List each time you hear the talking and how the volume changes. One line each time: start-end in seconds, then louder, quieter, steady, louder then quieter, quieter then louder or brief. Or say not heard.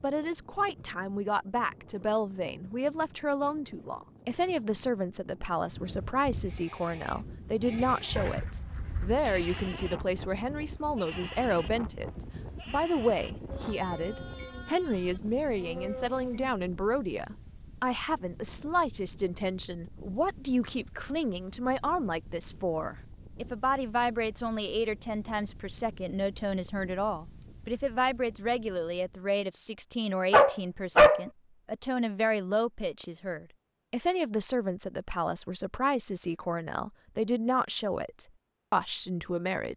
0.0-39.7 steady.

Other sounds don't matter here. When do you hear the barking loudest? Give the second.
31 s.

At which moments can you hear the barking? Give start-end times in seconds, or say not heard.
8.2-9.8, 30.3-31.2.